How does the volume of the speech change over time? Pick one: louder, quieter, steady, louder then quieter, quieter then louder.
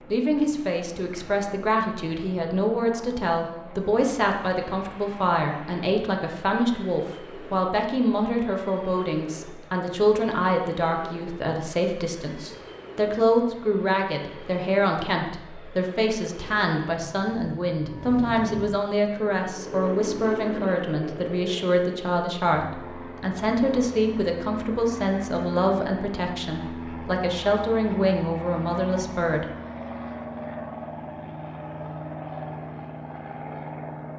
steady.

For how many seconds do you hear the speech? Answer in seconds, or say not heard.
29 s.